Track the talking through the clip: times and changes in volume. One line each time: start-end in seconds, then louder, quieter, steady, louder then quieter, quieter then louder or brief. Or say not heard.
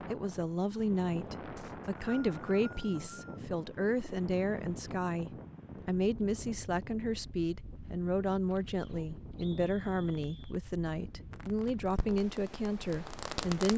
0.1-13.7 steady.